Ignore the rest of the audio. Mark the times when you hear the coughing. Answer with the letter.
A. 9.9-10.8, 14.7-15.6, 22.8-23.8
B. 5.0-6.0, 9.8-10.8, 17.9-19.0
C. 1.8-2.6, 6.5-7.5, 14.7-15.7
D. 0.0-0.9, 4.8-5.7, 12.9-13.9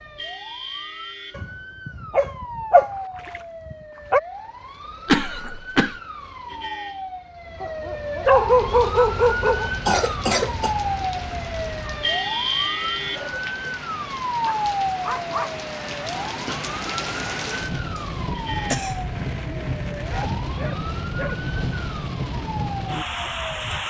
B.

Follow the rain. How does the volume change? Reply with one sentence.
The volume of the rain goes up.